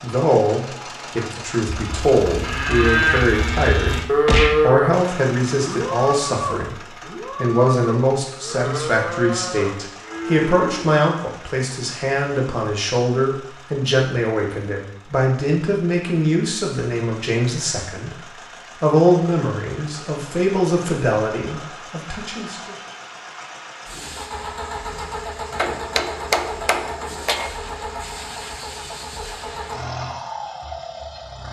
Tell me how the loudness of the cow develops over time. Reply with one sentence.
The volume of the cow goes down.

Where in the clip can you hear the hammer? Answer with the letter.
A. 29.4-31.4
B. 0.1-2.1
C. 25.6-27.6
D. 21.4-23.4
C.